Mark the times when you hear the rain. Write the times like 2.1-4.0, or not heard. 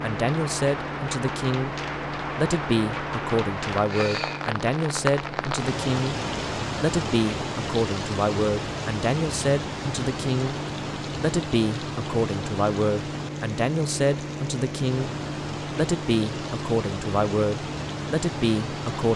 0.0-19.1.